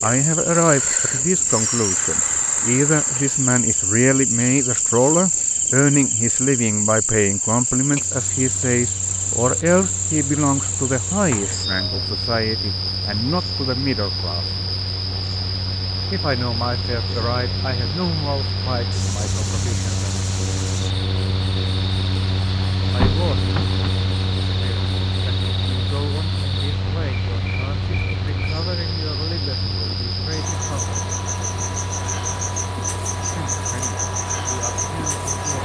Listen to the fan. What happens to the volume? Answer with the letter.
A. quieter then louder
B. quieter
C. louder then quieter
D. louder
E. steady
C.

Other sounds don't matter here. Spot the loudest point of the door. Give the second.
23 s.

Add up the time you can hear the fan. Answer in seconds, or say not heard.
28 s.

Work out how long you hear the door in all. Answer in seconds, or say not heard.
2 s.